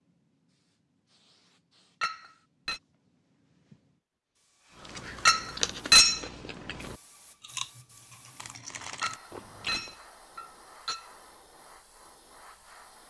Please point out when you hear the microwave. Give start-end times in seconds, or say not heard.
not heard.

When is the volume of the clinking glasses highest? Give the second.
6 s.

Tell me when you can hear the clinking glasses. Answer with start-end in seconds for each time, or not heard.
2.0-2.8, 5.2-6.2, 9.0-11.1.